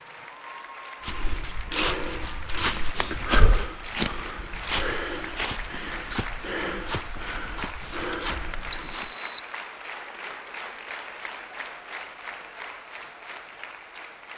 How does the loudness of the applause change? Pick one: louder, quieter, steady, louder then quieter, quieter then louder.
steady.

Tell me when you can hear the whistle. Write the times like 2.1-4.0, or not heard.
8.7-9.5.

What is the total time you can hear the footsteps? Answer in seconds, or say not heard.
8 s.